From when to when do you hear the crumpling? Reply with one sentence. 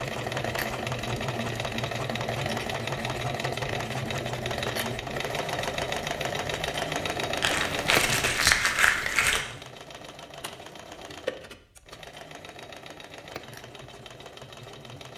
You can hear the crumpling from 7.4 to 9.4 s.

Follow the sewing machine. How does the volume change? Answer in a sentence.
The loudness of the sewing machine goes down.